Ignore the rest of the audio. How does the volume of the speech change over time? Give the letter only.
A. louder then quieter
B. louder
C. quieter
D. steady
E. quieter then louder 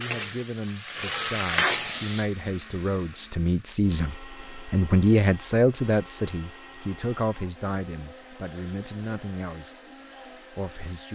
A.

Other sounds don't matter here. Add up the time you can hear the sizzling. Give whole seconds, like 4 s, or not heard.
2 s.